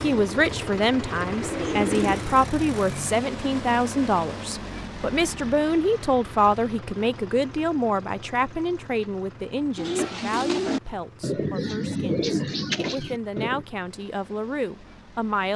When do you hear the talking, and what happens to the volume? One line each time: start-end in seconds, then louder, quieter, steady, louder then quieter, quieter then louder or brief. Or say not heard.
0.0-15.5 quieter.